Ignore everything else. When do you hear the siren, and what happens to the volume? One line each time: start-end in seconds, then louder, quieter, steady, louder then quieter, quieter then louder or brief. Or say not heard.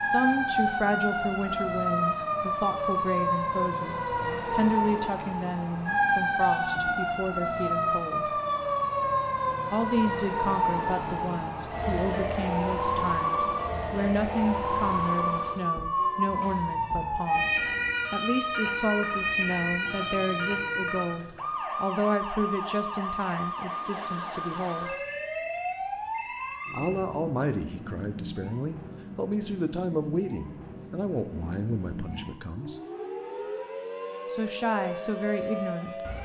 0.0-36.2 quieter.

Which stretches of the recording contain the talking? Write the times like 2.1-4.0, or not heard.
0.0-8.4, 9.7-24.9, 26.7-32.8, 34.3-36.0.